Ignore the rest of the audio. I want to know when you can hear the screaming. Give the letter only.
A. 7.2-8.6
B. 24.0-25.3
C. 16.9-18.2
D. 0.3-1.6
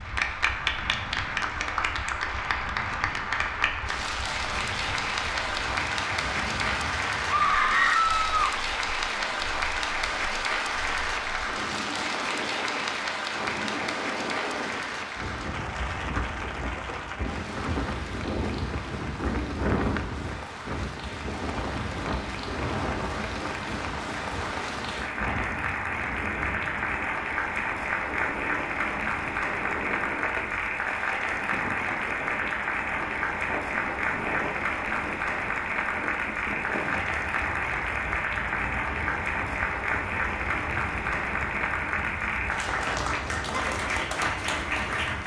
A.